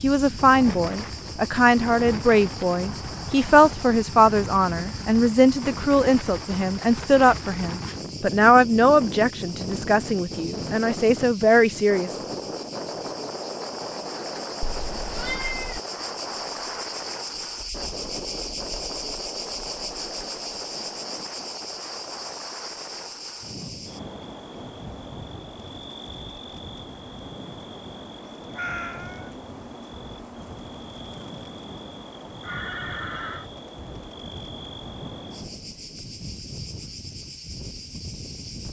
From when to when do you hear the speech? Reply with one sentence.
You can hear the speech from 0.0 to 12.1 s.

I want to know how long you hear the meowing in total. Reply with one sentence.
The meowing can be heard for 2 seconds in total.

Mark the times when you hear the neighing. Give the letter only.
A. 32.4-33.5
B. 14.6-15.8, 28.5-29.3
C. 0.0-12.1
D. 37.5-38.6
A.